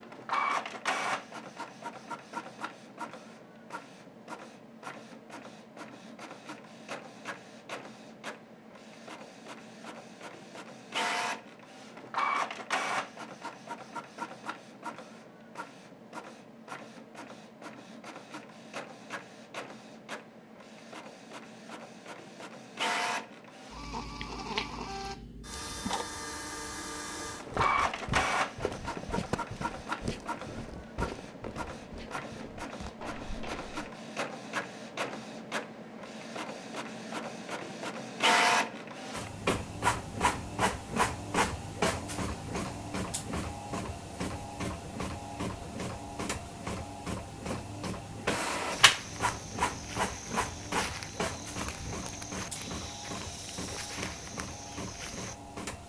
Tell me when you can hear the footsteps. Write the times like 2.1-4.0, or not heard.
27.3-33.9, 48.7-55.4.